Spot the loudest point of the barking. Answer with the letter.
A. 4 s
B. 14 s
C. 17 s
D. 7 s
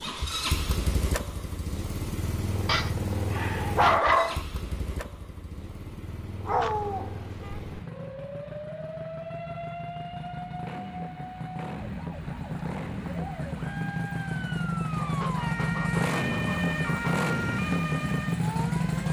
A.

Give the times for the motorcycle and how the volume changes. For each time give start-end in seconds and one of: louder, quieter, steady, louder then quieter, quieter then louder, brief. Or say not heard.
0.0-19.0 quieter then louder.